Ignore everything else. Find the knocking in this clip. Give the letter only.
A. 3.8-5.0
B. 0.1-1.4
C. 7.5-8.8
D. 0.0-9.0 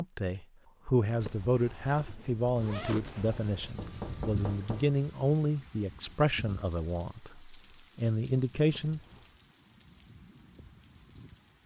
A.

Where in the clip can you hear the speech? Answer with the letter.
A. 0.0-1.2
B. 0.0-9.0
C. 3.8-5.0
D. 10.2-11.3
B.